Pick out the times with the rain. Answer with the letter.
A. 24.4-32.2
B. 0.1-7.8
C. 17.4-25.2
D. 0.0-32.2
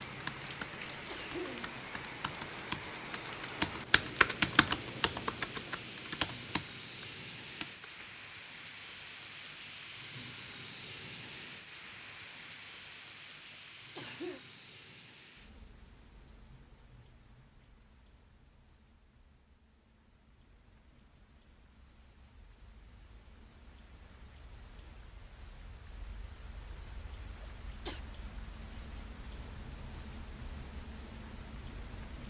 D.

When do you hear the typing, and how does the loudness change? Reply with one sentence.
You can hear the typing from 0.1 to 7.8 s, getting louder then quieter.